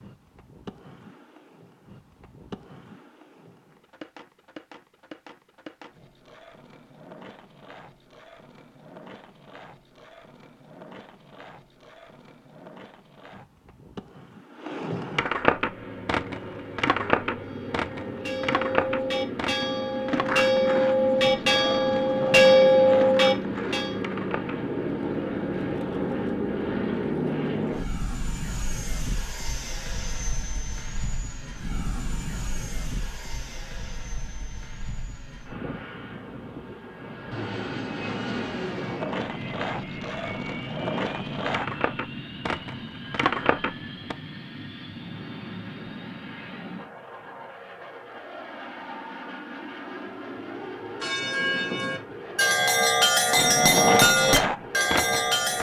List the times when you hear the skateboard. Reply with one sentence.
You can hear the skateboard from 0.0 to 24.6 s, from 39.0 to 44.1 s and from 53.4 to 55.5 s.